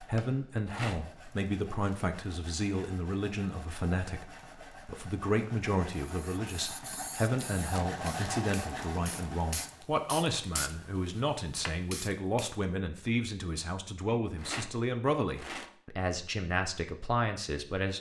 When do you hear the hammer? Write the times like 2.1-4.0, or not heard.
not heard.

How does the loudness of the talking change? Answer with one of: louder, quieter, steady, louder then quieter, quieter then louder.
steady.